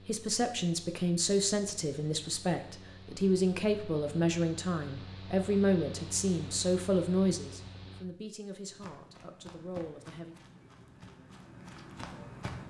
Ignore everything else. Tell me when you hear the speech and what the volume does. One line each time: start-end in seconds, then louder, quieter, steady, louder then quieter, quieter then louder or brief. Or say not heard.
0.1-10.3 quieter.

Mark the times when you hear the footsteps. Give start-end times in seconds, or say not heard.
8.7-12.6.